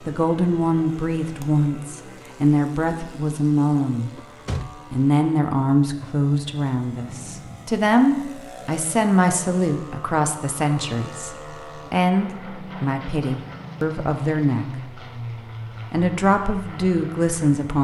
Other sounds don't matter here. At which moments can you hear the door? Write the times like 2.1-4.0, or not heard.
4.2-4.8.